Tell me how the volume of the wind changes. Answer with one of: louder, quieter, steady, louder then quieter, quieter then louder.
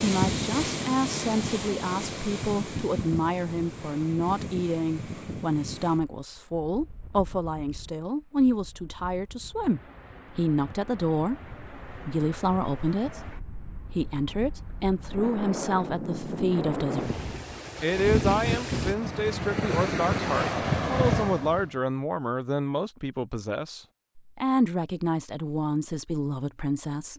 quieter then louder.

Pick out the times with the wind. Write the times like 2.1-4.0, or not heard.
0.0-21.7.